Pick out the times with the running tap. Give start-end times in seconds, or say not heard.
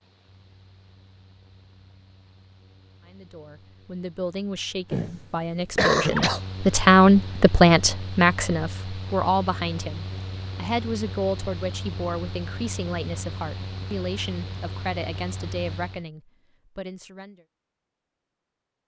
not heard.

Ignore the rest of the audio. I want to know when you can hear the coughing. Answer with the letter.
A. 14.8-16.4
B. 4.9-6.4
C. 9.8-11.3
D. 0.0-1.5
B.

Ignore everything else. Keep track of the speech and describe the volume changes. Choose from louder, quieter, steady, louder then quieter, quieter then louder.
louder then quieter.